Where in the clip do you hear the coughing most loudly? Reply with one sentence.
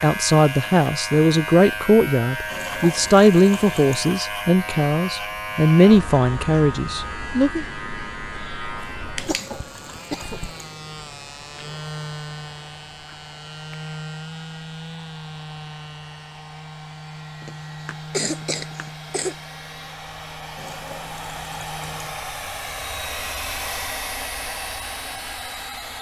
The loudest moment of the coughing is at 18 seconds.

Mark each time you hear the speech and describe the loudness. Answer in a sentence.
You can hear the speech from 0.0 to 7.7 s, at a steady volume.